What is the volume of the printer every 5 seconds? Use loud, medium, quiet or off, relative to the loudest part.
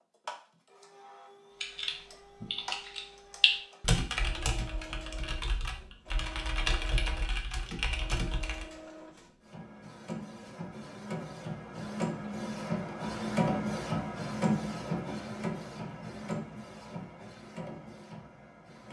quiet, quiet, loud, medium.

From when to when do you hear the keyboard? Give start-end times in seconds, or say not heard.
1.6-8.7.